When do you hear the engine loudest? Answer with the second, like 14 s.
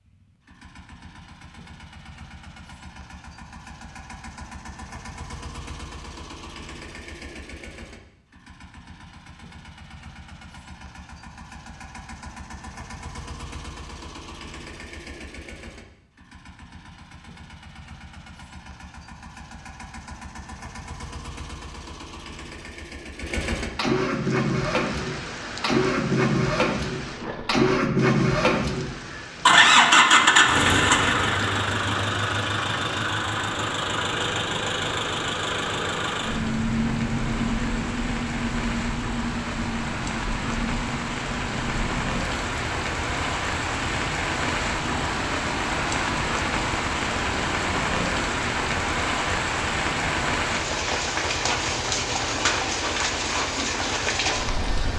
30 s.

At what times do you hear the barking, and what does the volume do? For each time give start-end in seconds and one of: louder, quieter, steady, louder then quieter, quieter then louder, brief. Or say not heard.
not heard.